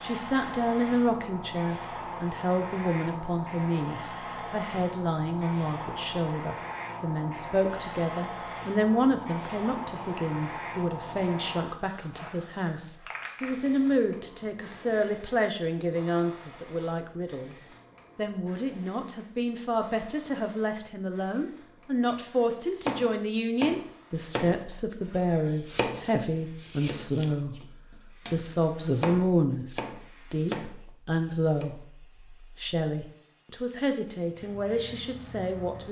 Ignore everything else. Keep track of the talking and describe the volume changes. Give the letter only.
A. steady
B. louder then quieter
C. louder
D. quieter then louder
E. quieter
A.